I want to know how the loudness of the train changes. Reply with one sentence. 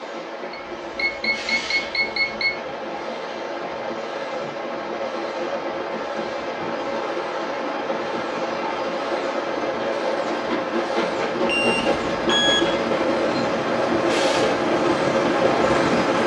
The loudness of the train goes up.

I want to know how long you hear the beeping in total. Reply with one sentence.
The beeping can be heard for 3 seconds in total.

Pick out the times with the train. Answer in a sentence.
The train can be heard from 0.0 to 16.2 s.